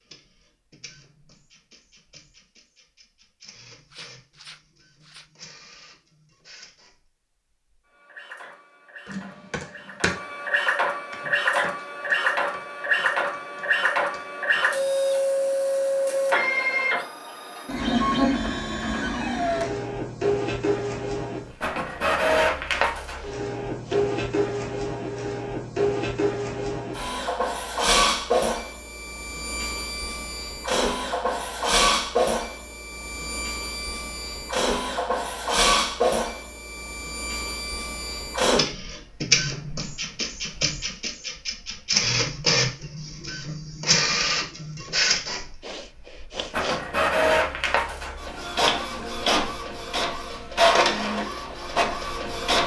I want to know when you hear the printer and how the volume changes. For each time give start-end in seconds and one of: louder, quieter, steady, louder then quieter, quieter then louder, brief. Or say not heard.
0.0-52.6 louder.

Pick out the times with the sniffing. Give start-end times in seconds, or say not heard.
3.9-5.3, 23.1-24.1, 45.6-46.9.